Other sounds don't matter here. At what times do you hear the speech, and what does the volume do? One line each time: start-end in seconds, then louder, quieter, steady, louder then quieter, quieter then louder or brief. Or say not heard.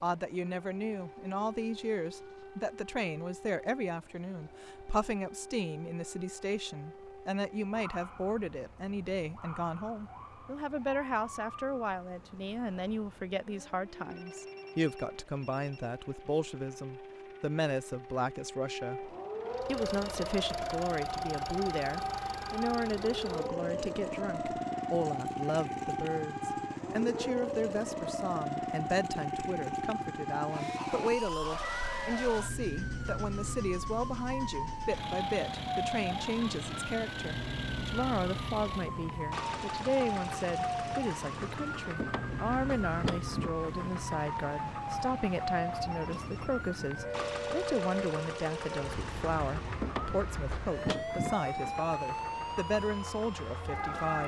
0.0-54.2 steady.